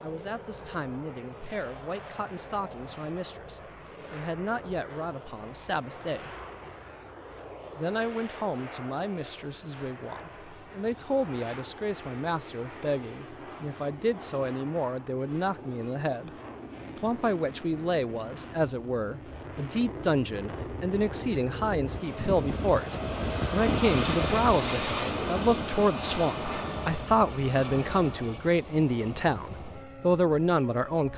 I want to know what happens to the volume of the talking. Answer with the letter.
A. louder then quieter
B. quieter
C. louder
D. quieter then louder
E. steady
C.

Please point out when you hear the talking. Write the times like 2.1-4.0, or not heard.
0.0-6.3, 7.8-16.3, 16.9-31.1.